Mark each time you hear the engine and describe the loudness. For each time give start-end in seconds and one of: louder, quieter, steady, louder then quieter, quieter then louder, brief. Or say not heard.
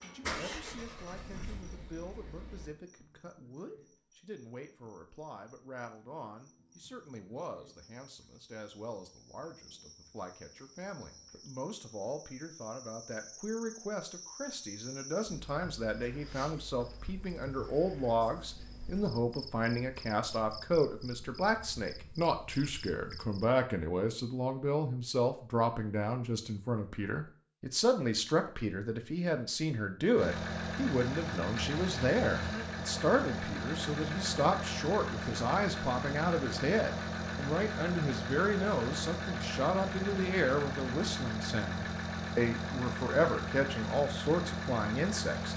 0.0-2.8 brief
30.1-45.5 steady.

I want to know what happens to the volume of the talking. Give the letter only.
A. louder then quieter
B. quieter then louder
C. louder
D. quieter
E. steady
C.